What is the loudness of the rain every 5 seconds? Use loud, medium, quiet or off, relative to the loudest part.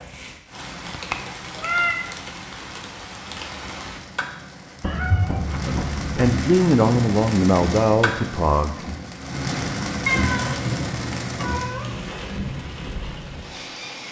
medium, loud, loud.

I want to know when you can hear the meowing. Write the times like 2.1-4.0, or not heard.
0.8-2.0, 4.8-6.4, 10.1-12.0.